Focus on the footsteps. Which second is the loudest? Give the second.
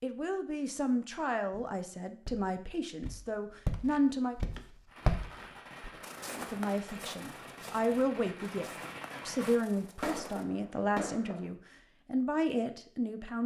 5 s.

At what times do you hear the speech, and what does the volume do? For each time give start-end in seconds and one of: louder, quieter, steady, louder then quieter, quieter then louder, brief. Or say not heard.
0.0-4.3 quieter then louder
6.3-13.4 steady.